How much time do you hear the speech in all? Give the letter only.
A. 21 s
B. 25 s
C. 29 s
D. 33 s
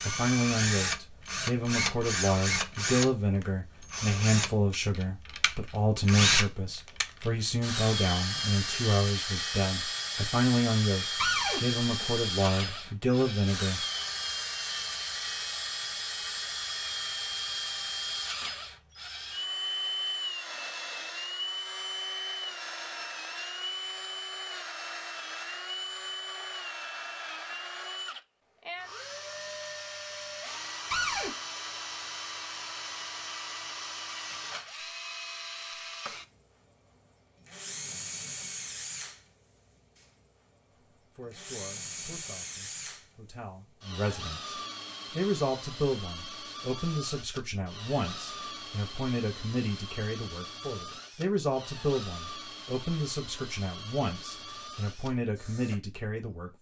C.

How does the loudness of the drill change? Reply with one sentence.
The volume of the drill goes down.